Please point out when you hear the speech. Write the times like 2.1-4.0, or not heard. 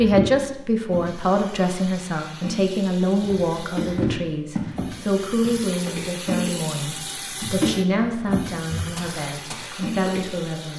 0.0-10.7.